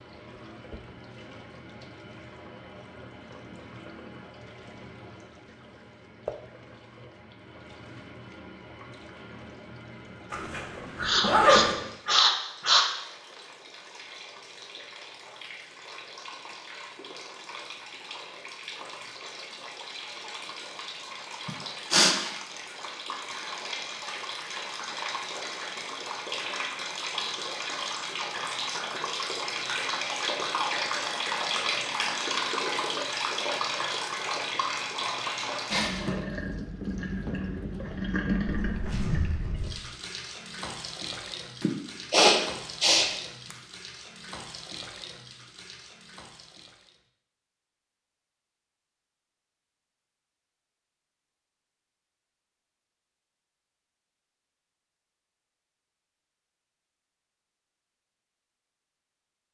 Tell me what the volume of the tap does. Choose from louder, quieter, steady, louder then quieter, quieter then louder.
louder then quieter.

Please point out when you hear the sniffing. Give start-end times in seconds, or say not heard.
10.9-12.9, 21.4-22.1, 41.6-43.5.